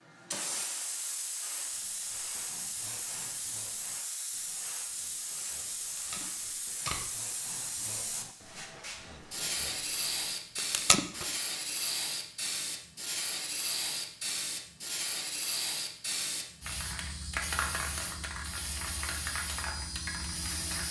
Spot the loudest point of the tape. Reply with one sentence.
The volume of the tape peaks at 11 seconds.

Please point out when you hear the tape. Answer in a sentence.
You can hear the tape from 6.0 to 7.1 s and from 10.6 to 11.2 s.